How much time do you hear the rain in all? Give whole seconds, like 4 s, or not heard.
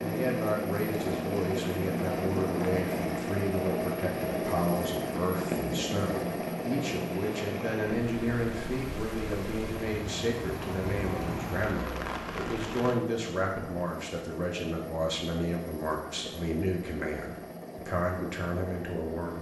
13 s.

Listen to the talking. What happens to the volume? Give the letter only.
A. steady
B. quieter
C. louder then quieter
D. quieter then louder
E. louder
A.